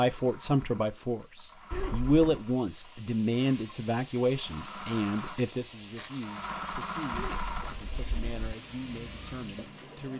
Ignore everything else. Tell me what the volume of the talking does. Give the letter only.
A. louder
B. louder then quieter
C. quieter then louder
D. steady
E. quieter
E.